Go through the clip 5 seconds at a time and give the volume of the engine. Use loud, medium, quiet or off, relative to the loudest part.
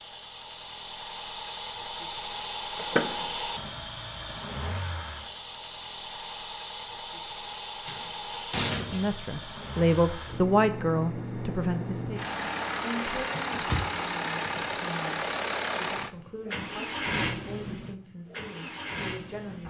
loud, medium, loud, loud.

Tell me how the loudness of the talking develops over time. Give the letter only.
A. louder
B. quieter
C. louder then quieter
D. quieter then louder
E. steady
B.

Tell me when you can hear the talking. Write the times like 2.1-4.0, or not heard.
8.8-19.6.